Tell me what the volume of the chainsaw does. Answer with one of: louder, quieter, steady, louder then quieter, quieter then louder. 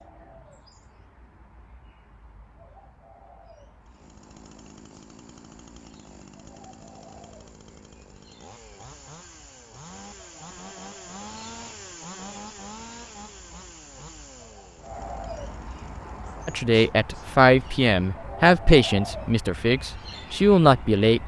louder then quieter.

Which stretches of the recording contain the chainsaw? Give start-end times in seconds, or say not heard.
3.9-16.6.